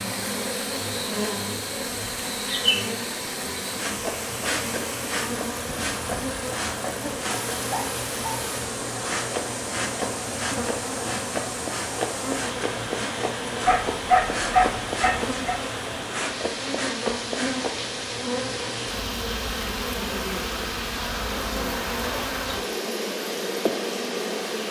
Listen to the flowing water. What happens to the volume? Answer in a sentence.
The volume of the flowing water stays about the same.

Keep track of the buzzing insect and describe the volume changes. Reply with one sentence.
The loudness of the buzzing insect stays about the same.